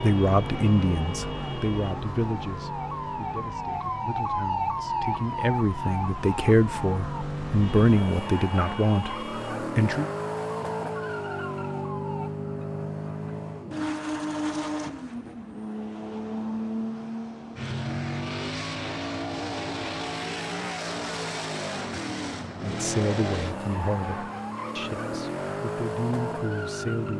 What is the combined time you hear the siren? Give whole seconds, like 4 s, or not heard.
12 s.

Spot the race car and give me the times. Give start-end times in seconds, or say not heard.
0.0-27.1.